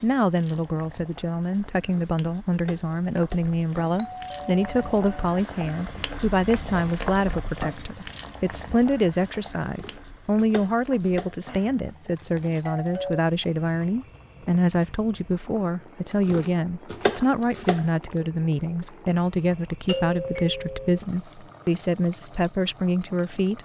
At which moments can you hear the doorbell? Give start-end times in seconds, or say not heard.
4.0-5.3, 11.4-13.2, 19.9-20.9.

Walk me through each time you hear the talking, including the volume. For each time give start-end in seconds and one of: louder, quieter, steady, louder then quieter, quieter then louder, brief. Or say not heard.
0.0-23.6 steady.